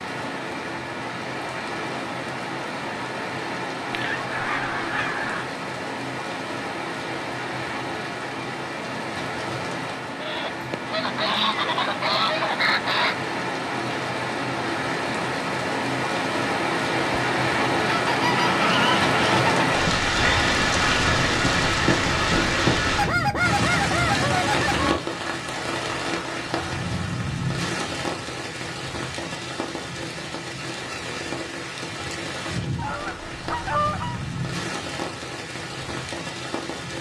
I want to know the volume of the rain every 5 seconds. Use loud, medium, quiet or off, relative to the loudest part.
medium, medium, medium, loud, loud, medium, medium, medium.